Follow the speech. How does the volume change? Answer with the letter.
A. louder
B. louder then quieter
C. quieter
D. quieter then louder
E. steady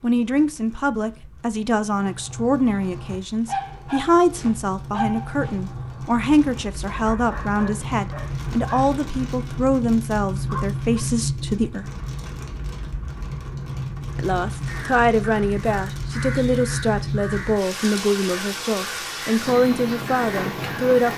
E.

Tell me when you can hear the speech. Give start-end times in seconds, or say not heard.
0.0-11.9, 14.2-21.1.